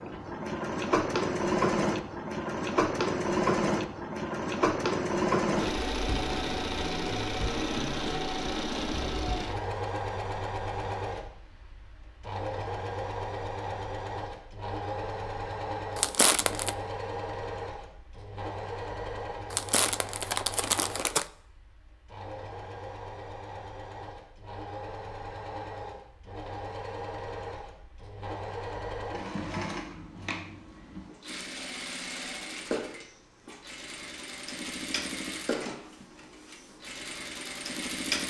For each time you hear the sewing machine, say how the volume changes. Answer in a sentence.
You can hear the sewing machine from 0.0 to 38.2 s, getting quieter.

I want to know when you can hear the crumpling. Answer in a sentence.
You can hear the crumpling from 15.9 to 16.8 s and from 19.5 to 21.2 s.